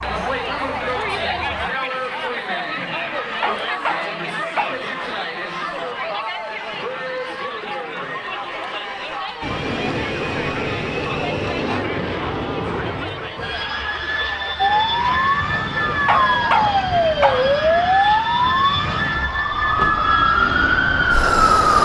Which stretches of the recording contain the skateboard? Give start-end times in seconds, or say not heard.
not heard.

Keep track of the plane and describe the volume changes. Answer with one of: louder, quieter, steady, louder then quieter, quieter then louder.
steady.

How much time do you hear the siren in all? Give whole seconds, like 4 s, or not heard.
9 s.